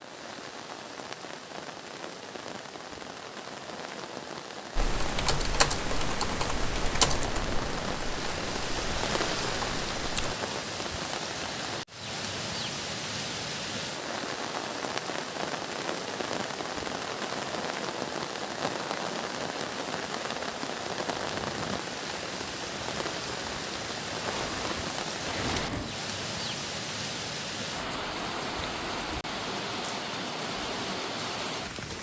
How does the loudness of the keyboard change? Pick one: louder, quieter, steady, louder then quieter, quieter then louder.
quieter.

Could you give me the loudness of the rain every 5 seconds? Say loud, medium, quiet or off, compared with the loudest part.
medium, loud, loud, loud, loud, loud, loud.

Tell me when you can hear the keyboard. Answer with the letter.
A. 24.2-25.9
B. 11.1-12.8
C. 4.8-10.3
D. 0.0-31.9
C.